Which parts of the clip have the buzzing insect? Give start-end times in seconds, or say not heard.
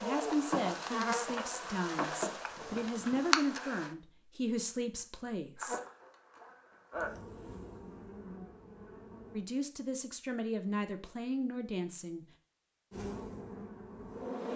0.0-3.9, 5.5-9.4, 12.9-14.5.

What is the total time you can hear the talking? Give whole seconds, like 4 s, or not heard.
9 s.